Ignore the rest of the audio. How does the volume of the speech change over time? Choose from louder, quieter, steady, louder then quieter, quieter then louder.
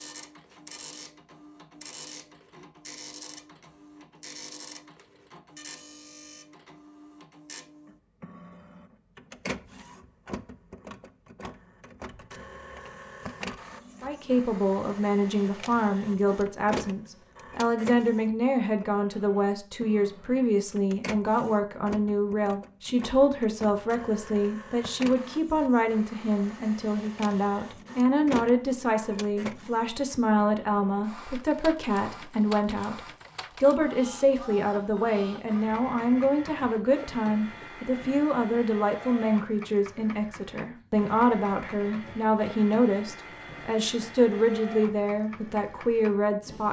steady.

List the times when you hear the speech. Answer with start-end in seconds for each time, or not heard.
14.0-46.6.